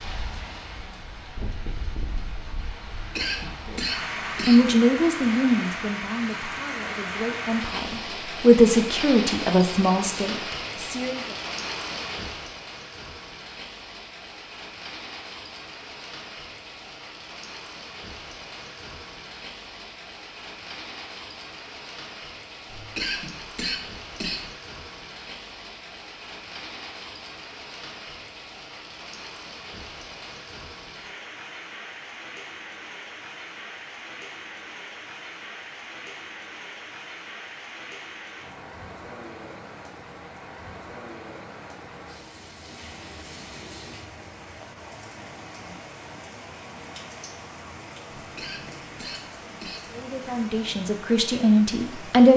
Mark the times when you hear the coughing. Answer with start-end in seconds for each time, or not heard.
3.0-4.7, 22.6-24.5, 48.1-49.9.